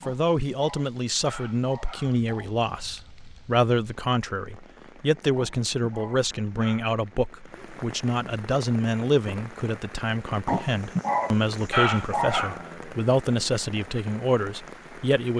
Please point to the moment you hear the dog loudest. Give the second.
12 s.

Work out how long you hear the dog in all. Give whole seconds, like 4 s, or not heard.
6 s.